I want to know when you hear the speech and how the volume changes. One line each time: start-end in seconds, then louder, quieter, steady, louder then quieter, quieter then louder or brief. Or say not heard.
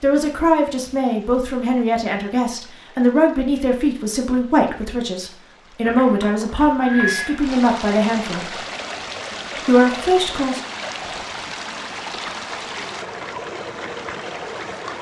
0.0-8.6 steady
9.7-10.6 brief.